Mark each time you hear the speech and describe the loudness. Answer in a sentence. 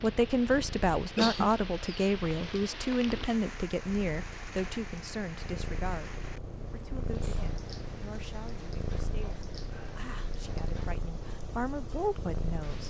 The speech can be heard from 0.0 to 12.8 s, getting quieter then louder.